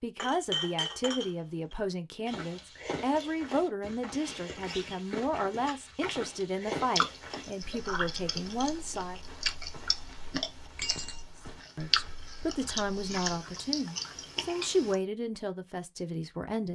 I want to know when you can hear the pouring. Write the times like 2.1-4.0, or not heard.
not heard.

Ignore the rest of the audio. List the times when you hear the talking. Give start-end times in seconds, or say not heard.
0.0-9.2, 11.8-16.7.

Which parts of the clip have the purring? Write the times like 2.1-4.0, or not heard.
not heard.